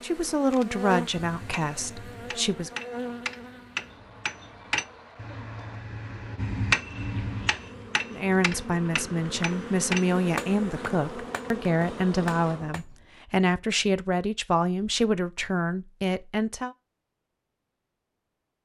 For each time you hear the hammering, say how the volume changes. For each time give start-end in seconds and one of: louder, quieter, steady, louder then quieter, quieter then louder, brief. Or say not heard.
1.2-13.1 louder then quieter.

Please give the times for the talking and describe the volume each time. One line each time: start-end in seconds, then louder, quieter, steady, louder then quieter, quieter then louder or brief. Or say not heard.
0.0-2.7 brief
8.1-16.8 steady.